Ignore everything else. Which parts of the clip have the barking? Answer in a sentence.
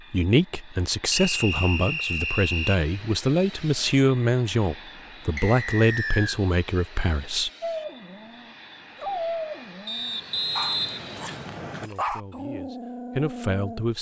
You can hear the barking from 7.6 to 13.8 s.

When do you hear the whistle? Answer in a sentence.
The whistle can be heard from 1.1 to 2.8 s, from 5.3 to 6.4 s and from 9.8 to 11.9 s.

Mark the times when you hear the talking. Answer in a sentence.
The talking can be heard from 0.1 to 7.5 s and from 11.8 to 13.9 s.